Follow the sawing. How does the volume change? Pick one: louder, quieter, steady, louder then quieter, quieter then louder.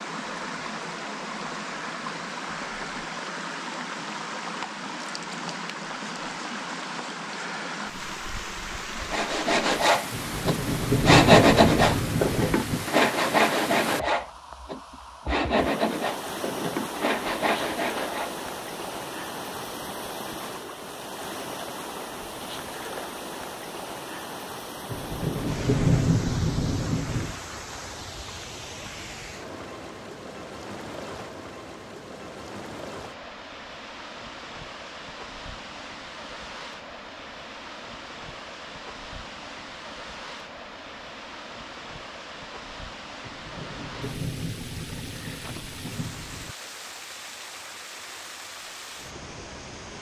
quieter.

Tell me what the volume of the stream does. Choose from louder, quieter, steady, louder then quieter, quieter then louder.
quieter.